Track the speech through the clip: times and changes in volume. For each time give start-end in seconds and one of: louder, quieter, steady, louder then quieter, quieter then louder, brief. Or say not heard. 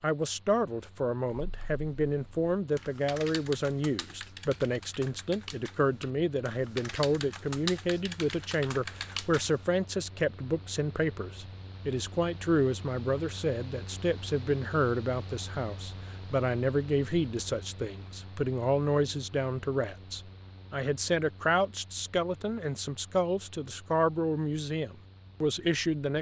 0.0-26.1 steady.